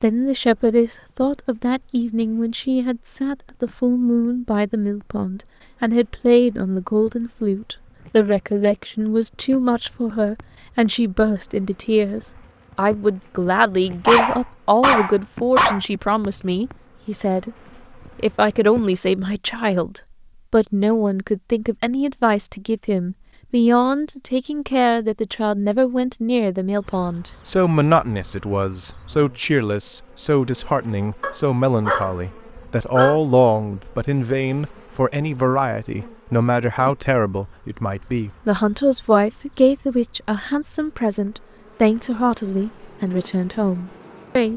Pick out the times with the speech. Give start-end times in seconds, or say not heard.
0.0-17.6, 18.1-44.5.